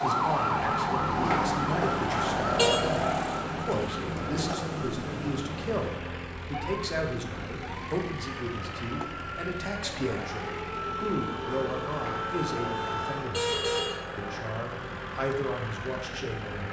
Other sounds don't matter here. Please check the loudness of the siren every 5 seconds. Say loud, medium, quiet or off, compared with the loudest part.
loud, medium, medium, off.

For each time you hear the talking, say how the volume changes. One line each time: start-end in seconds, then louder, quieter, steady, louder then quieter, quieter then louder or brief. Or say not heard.
0.0-16.6 steady.